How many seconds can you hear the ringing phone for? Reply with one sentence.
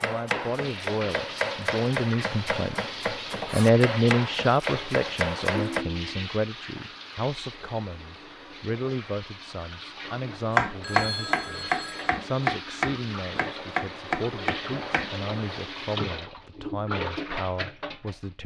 You can hear the ringing phone for 2 seconds altogether.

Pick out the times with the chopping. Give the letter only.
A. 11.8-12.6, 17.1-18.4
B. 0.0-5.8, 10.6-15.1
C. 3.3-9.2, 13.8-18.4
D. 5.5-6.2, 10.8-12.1
B.